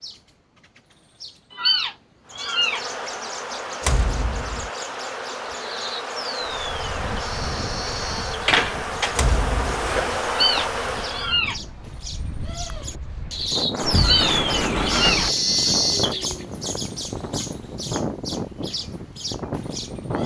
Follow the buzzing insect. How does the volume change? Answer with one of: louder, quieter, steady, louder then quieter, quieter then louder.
louder.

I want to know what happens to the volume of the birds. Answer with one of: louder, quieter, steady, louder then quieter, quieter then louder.
louder then quieter.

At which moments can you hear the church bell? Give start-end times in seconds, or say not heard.
not heard.